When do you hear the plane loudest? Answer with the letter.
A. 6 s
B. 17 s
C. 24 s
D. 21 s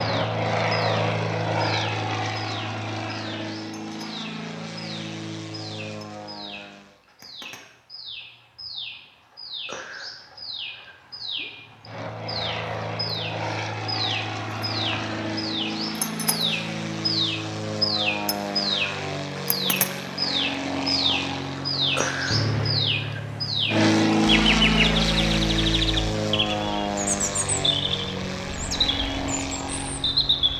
C.